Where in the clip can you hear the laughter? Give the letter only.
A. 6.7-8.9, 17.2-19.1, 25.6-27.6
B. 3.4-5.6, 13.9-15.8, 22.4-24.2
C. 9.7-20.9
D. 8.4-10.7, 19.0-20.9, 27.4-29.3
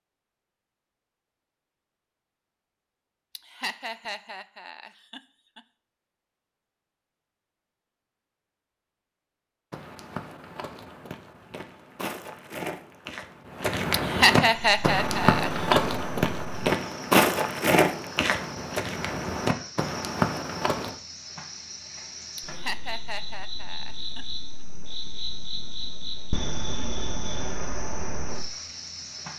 B.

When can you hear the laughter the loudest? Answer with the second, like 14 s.
14 s.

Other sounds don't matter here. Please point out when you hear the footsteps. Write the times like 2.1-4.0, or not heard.
9.7-20.9.